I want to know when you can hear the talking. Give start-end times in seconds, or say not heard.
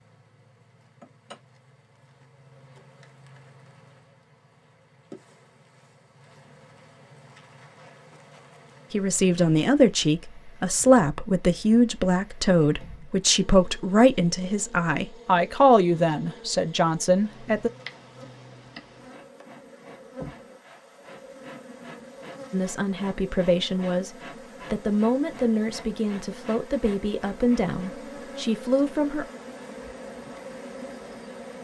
8.9-17.7, 22.5-29.2.